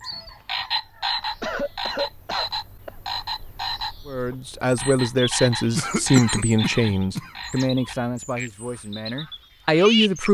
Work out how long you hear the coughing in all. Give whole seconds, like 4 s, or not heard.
3 s.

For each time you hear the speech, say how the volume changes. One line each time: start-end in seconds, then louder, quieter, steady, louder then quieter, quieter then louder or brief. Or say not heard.
4.0-10.3 quieter then louder.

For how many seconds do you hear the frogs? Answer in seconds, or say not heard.
10 s.